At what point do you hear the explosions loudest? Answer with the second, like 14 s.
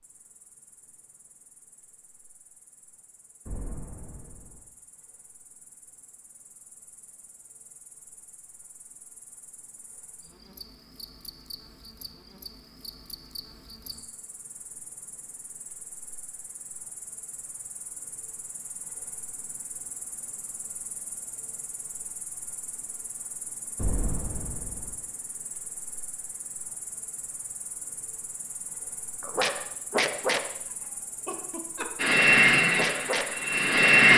24 s.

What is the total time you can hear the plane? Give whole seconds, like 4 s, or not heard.
2 s.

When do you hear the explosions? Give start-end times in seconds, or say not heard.
3.5-4.7, 23.8-25.0.